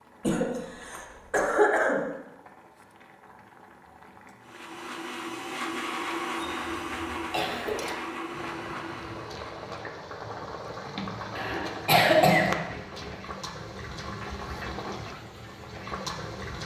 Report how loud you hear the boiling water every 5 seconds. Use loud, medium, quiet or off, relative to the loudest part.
quiet, medium, loud, loud.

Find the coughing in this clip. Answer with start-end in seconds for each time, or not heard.
0.2-2.0, 6.4-8.0, 11.3-12.6.